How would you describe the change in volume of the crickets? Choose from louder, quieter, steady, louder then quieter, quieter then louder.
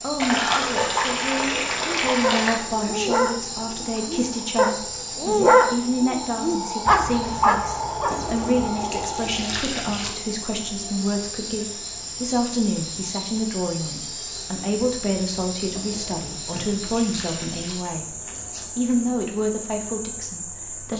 steady.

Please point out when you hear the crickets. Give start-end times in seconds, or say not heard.
0.0-20.9.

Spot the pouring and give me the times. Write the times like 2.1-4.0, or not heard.
0.1-2.5, 8.1-10.1, 15.7-17.8.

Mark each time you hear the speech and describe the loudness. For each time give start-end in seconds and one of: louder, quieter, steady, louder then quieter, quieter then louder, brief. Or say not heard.
0.0-18.1 steady
18.8-20.9 brief.